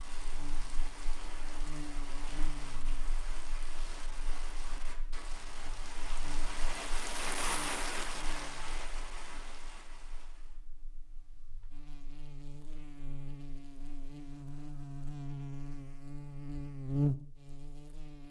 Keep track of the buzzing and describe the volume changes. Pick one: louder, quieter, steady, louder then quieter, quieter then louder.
quieter then louder.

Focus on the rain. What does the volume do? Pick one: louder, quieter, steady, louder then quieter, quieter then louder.
louder then quieter.